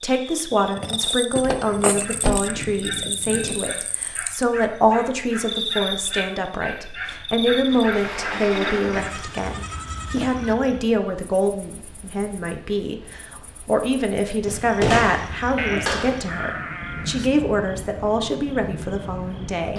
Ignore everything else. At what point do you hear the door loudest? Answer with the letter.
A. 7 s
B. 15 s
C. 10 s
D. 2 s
B.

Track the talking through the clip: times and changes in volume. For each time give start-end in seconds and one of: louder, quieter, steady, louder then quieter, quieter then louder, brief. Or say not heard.
0.0-19.7 steady.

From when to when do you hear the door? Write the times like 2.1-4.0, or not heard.
1.4-2.4, 7.7-9.8, 14.4-16.2.